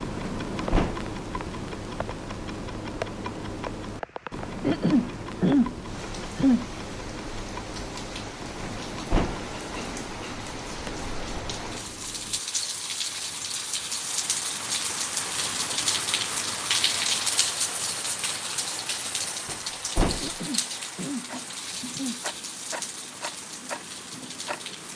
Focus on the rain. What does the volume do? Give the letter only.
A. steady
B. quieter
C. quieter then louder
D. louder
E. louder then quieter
E.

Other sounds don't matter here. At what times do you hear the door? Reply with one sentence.
You can hear the door from 0.2 to 1.1 s, from 8.6 to 9.4 s and from 19.4 to 20.3 s.